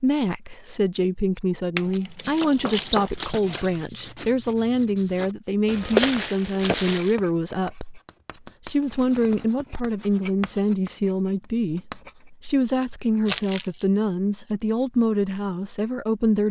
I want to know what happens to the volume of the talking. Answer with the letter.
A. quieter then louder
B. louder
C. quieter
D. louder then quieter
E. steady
E.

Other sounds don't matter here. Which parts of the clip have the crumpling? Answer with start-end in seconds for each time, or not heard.
1.8-3.8, 5.7-7.2, 13.2-13.8.